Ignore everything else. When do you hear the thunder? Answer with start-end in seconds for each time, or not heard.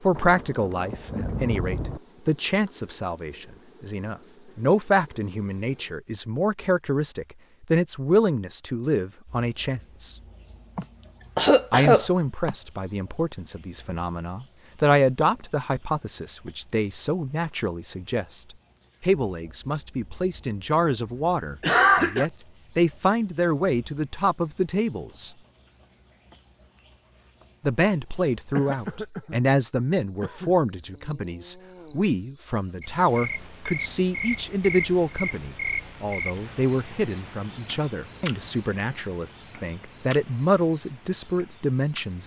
0.1-2.0.